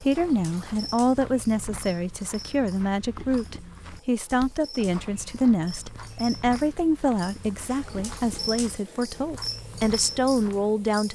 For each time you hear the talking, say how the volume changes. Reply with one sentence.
You can hear the talking from 0.0 to 11.1 s, at a steady volume.